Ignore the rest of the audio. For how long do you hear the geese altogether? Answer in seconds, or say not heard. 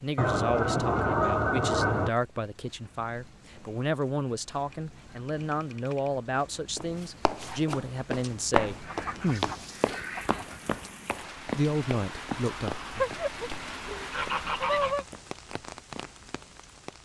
8 s.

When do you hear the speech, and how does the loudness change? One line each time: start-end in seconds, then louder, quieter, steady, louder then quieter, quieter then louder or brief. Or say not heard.
0.0-9.5 steady
11.6-12.9 brief.